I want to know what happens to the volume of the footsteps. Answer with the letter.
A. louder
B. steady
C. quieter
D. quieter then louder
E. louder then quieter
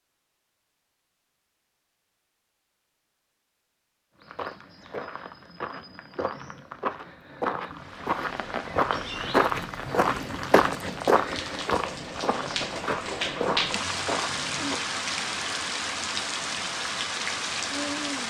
E.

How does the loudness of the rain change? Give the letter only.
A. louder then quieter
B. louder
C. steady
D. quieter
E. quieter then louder
B.